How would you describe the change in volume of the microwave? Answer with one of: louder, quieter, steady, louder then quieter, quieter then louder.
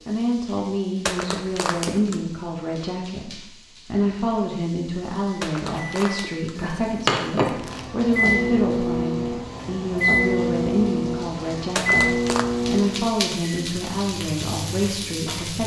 quieter.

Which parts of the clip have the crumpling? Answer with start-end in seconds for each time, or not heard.
1.1-2.2, 5.4-7.8, 11.8-12.4.